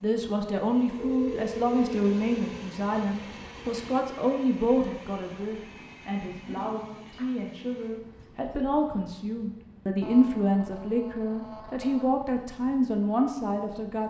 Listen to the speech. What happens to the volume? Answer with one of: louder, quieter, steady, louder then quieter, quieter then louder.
quieter then louder.